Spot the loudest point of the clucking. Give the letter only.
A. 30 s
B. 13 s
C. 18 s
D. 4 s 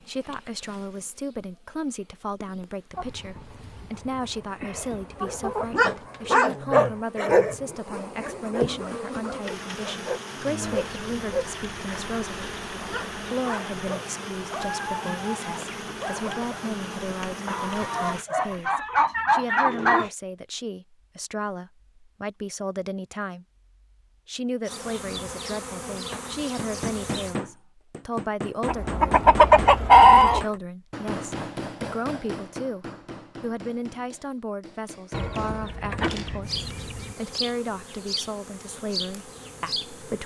A.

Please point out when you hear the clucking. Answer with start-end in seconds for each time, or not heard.
3.0-5.8, 10.8-13.3, 17.4-20.1, 28.6-30.4, 35.1-37.1.